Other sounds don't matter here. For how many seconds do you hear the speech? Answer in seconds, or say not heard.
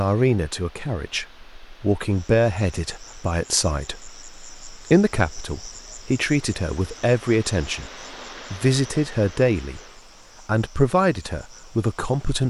11 s.